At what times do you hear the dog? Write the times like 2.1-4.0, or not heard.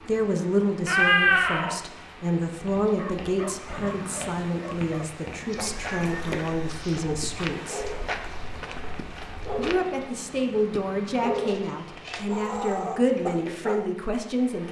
3.0-8.2, 8.9-9.9, 10.8-13.9.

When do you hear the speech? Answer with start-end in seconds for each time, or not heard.
0.0-8.0, 9.6-14.6.